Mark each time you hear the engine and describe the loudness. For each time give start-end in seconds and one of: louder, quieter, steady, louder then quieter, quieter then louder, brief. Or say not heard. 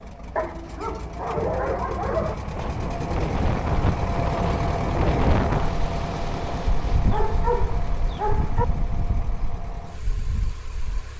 0.0-11.1 louder then quieter.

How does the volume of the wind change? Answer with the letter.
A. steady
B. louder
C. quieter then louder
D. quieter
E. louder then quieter
D.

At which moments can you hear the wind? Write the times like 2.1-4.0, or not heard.
2.5-11.1.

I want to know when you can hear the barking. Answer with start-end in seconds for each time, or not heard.
0.3-2.4, 7.1-8.7.